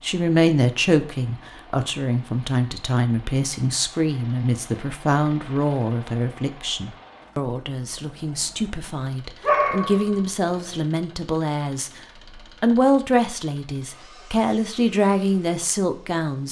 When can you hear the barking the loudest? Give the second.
10 s.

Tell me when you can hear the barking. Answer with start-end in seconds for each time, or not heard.
9.4-10.8.